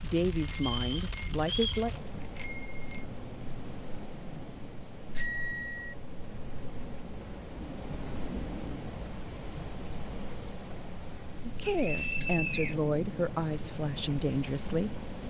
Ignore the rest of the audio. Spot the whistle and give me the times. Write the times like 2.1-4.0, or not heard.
0.6-1.9, 11.7-12.8.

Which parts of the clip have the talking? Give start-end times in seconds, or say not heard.
0.0-1.9, 11.4-14.9.